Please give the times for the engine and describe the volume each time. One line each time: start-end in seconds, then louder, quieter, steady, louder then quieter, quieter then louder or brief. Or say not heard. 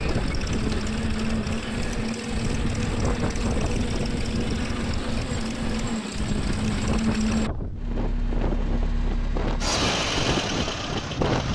0.0-11.5 steady.